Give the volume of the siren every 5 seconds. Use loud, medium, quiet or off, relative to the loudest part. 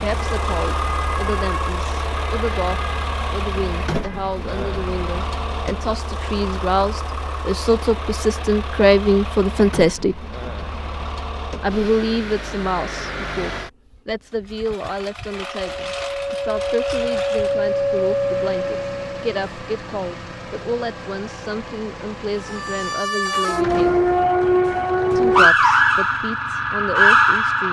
quiet, off, off, medium, loud, loud.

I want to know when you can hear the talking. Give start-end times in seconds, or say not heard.
0.0-10.2, 11.6-24.0, 25.1-27.6.